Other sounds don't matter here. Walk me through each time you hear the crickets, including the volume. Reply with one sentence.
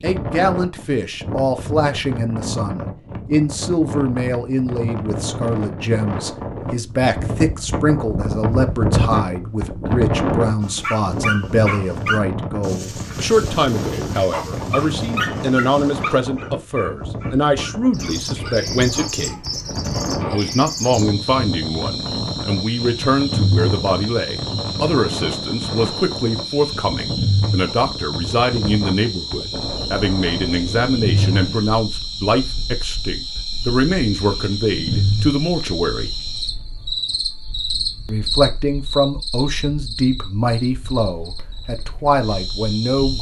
You can hear the crickets from 17.9 to 43.1 s, at a steady volume.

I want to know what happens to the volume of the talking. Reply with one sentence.
The volume of the talking stays about the same.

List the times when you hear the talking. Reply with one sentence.
You can hear the talking from 0.0 to 19.4 s, from 20.3 to 36.1 s and from 38.0 to 43.1 s.